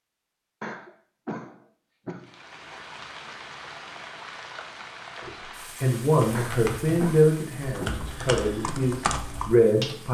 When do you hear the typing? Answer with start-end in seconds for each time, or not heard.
6.3-10.1.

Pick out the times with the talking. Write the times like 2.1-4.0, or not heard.
5.2-10.1.